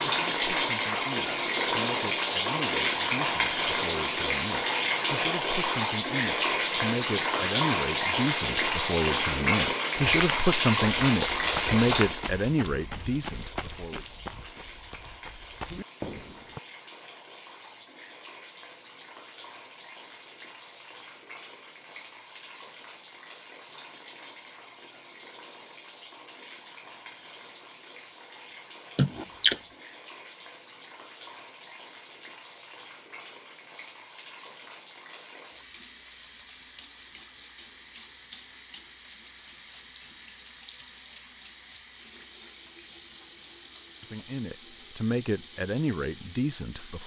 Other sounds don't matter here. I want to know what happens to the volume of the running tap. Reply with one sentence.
The volume of the running tap goes down.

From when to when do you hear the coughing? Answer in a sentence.
You can hear the coughing from 28.9 to 29.6 s.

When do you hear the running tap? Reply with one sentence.
The running tap can be heard from 0.0 to 47.0 s.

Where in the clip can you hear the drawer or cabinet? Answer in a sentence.
You can't hear the drawer or cabinet here.